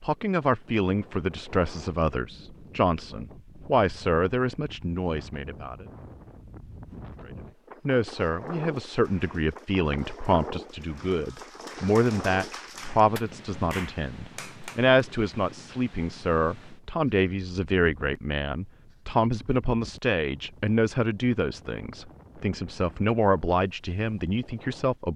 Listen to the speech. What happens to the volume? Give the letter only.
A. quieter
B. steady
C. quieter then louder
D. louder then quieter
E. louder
B.